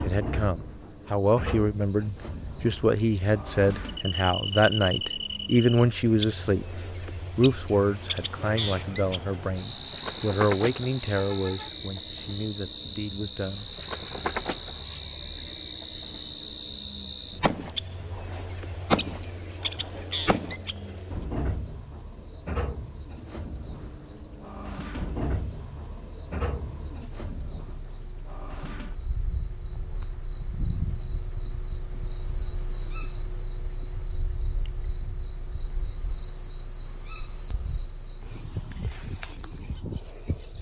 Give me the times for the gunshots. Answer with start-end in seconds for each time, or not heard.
17.4-20.6.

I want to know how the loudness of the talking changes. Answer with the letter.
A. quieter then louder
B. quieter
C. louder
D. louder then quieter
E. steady
B.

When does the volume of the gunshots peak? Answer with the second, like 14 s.
19 s.